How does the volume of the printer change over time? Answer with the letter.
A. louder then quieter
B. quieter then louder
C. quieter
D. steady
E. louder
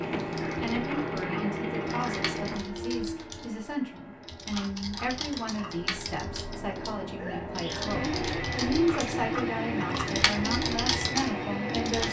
B.